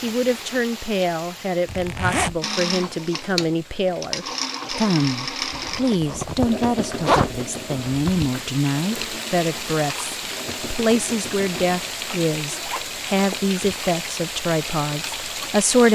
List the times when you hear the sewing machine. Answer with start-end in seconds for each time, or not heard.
2.4-12.1.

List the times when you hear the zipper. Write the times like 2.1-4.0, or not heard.
1.6-2.4, 5.5-8.3, 12.4-13.6.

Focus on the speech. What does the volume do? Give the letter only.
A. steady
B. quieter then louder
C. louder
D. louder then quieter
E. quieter
A.